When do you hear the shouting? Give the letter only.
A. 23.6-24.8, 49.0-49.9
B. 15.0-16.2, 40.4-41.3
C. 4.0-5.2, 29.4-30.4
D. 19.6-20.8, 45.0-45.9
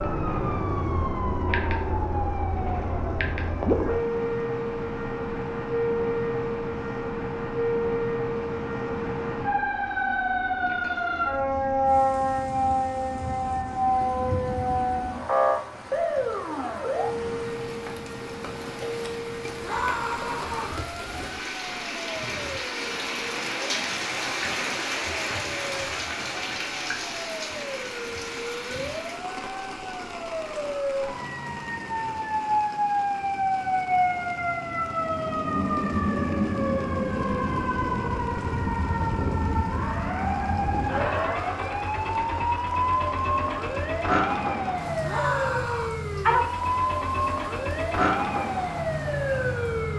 D.